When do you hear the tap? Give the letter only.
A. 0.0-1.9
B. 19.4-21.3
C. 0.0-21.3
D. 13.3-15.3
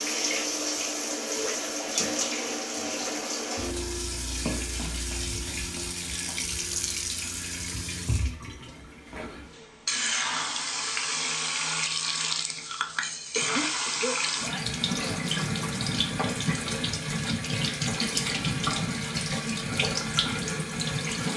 C.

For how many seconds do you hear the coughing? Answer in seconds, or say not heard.
2 s.